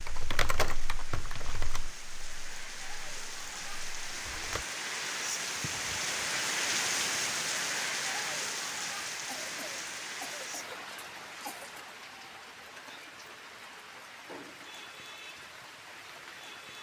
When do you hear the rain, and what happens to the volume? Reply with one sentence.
You can hear the rain from 0.0 to 16.7 s, getting louder then quieter.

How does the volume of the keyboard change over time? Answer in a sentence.
The volume of the keyboard goes down.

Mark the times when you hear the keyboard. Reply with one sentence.
You can hear the keyboard from 0.0 to 4.7 s.